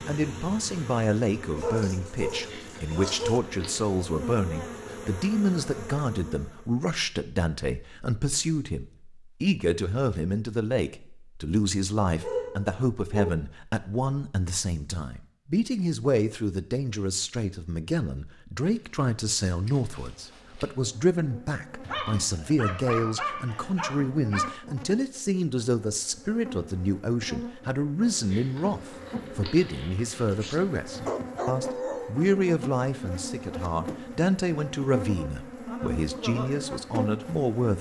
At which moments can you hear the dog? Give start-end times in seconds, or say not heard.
1.6-3.4, 12.2-13.3, 21.9-24.6, 30.4-32.1.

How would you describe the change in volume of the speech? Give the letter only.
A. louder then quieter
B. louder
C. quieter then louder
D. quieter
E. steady
E.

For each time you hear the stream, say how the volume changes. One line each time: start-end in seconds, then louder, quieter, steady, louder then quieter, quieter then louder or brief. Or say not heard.
not heard.